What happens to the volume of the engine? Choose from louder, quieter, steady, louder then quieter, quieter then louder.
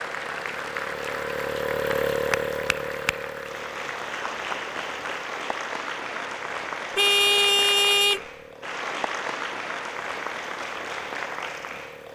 quieter.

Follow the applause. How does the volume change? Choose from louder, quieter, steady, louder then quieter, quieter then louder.
steady.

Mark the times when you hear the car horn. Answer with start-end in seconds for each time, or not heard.
7.0-8.2.